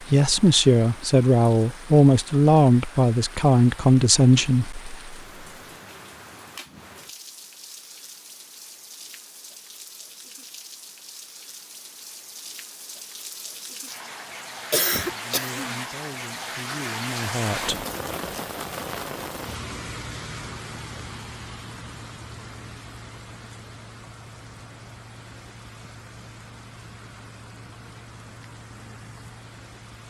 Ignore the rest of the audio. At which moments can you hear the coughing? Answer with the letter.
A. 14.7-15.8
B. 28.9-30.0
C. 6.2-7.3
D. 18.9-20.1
A.